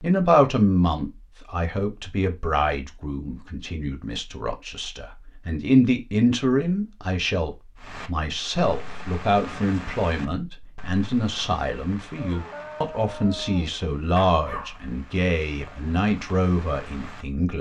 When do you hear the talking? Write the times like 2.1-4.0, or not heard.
0.0-17.5.